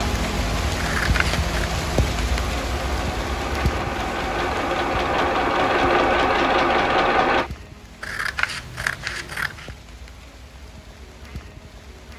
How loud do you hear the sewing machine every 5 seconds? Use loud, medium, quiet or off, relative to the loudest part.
medium, loud, off.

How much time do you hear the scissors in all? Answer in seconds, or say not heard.
3 s.